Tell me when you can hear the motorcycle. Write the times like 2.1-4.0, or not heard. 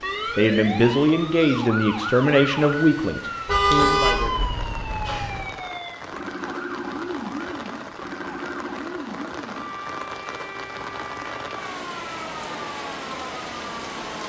not heard.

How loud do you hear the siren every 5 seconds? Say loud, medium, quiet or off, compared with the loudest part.
loud, loud, medium.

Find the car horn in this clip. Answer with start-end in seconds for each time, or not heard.
3.5-5.5.